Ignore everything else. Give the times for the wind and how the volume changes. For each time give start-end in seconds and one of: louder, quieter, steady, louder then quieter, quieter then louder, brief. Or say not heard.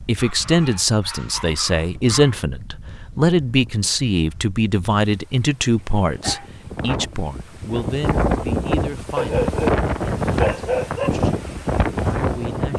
0.0-12.7 louder.